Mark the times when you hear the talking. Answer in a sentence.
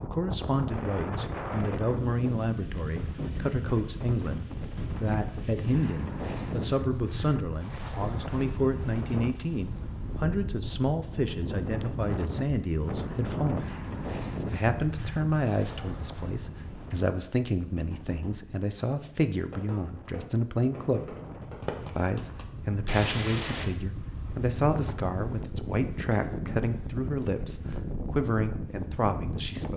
You can hear the talking from 0.0 to 13.7 s, from 14.5 to 21.1 s and from 21.9 to 29.7 s.